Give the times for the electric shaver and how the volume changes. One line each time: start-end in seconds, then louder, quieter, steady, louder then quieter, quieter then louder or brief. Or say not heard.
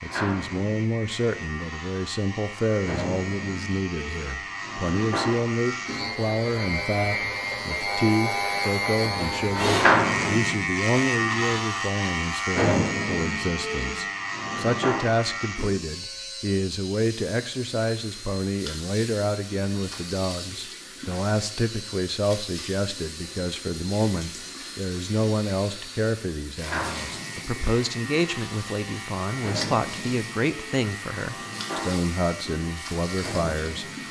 0.0-34.0 louder then quieter.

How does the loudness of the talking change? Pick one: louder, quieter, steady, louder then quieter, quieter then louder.
steady.